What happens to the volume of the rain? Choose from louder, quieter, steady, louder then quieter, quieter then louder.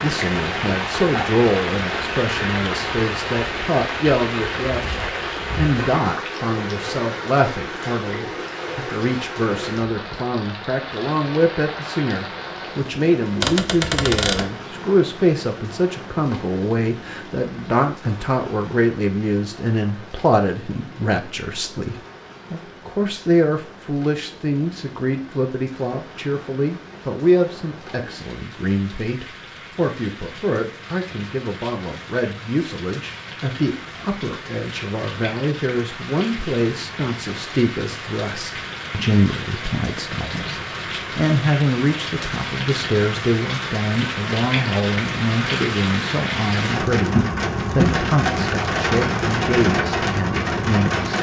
quieter then louder.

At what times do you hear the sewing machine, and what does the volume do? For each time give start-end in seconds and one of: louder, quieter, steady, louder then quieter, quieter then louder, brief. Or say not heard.
not heard.